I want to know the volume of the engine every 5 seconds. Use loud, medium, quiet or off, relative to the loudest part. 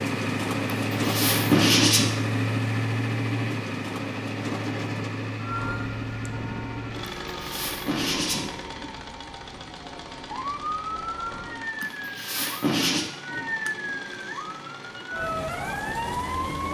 loud, medium, quiet, quiet.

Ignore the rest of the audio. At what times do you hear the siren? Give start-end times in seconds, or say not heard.
5.4-16.6.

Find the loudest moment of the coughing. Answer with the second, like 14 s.
2 s.